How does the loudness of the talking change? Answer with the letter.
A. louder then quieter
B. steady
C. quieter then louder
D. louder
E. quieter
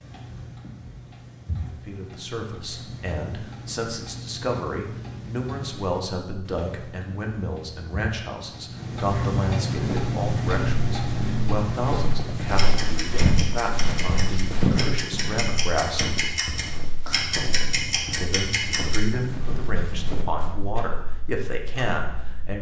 B.